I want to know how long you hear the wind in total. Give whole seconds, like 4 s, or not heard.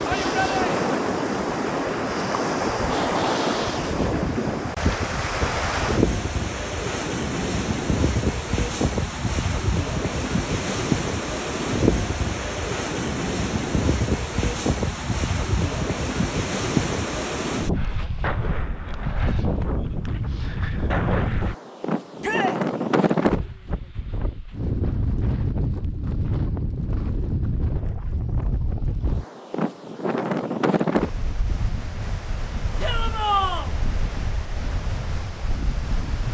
36 s.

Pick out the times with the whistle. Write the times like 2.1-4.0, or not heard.
not heard.